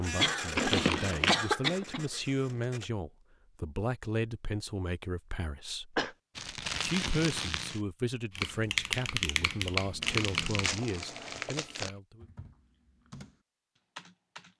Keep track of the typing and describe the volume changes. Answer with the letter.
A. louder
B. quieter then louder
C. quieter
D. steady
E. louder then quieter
B.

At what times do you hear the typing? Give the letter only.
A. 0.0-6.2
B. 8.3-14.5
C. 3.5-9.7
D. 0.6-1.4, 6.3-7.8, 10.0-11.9
B.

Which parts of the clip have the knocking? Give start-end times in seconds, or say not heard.
not heard.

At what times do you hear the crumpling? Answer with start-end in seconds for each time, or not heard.
0.6-1.4, 6.3-7.8, 10.0-11.9.